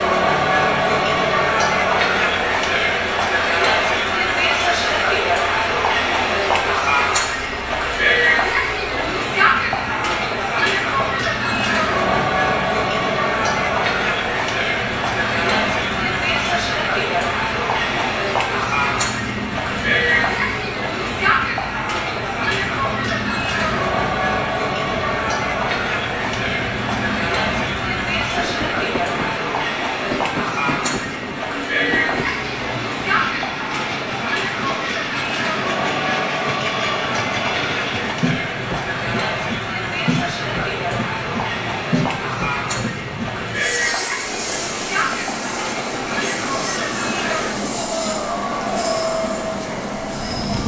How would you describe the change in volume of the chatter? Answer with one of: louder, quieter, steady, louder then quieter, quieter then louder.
quieter.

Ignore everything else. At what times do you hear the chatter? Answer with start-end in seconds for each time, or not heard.
0.0-50.6.